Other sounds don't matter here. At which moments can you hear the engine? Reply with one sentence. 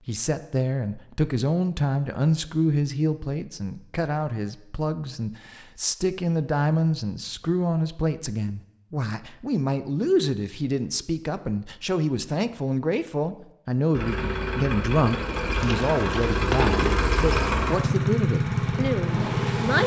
The engine can be heard from 13.9 to 19.8 s.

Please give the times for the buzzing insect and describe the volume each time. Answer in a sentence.
You can hear the buzzing insect from 15.6 to 19.8 s, getting quieter then louder.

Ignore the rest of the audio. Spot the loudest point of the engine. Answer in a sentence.
The volume of the engine peaks at 18 seconds.